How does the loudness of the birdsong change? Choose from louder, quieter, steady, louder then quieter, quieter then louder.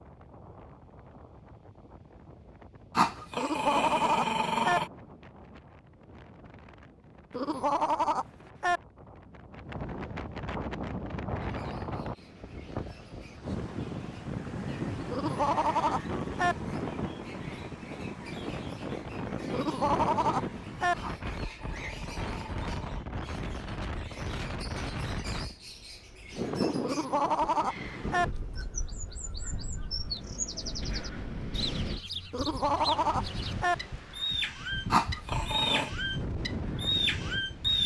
louder.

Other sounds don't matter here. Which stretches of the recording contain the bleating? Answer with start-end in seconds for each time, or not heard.
3.4-4.8, 7.3-8.8, 15.1-16.6, 19.5-20.9, 26.8-28.2, 32.3-33.8.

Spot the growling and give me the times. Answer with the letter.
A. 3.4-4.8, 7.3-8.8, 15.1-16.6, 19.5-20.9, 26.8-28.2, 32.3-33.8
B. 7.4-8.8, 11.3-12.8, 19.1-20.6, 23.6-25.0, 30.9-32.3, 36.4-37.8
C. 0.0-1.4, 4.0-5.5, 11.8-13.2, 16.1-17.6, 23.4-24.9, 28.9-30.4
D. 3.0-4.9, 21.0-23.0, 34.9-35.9
D.